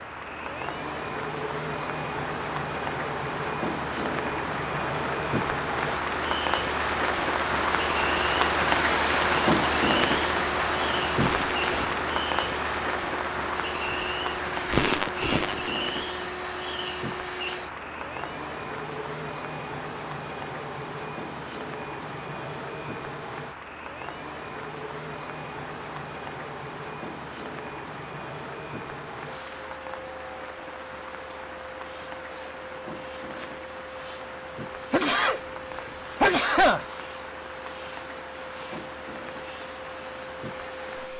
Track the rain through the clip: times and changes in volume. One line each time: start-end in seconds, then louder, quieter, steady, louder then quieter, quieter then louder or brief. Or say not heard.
0.0-41.1 quieter.